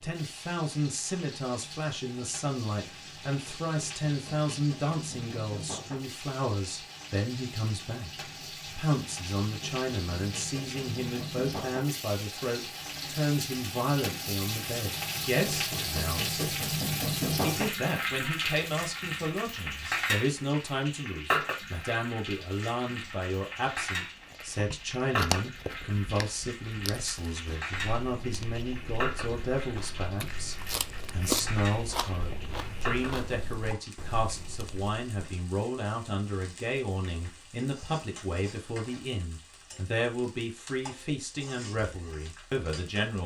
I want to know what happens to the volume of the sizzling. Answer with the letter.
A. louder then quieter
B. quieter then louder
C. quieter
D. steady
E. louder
A.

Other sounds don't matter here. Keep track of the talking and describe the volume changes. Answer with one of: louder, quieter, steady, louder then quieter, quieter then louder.
steady.